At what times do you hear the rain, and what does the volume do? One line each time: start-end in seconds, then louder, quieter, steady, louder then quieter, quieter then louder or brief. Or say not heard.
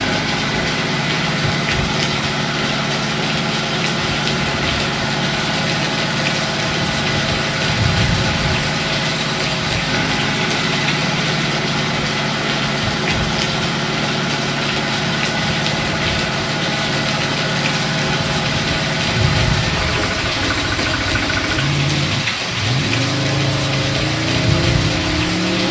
0.0-25.6 steady.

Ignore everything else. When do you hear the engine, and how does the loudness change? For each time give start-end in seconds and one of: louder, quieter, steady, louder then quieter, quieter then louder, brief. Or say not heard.
0.0-25.6 steady.